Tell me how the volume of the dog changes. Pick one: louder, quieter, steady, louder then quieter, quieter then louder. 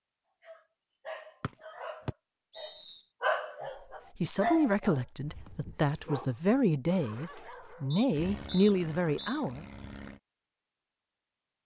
louder then quieter.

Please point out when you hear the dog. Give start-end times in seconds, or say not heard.
0.4-8.0.